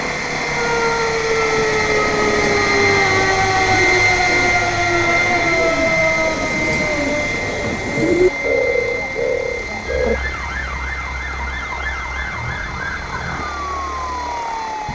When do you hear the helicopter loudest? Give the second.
4 s.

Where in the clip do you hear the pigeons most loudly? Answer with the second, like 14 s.
8 s.